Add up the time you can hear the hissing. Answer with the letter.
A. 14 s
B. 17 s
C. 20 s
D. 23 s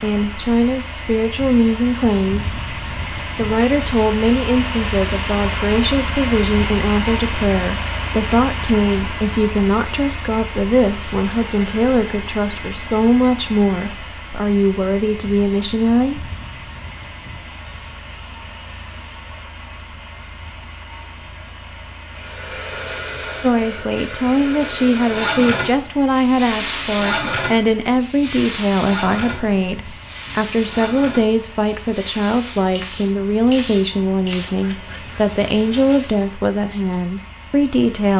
A.